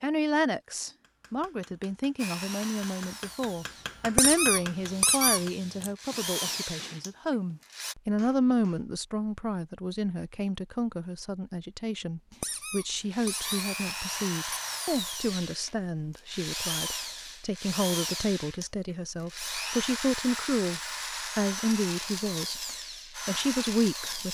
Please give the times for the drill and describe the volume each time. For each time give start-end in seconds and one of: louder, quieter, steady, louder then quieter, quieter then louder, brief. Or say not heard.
2.1-8.0 quieter then louder
12.3-24.2 steady.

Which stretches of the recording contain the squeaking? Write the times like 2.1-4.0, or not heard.
4.2-5.9, 12.4-14.7.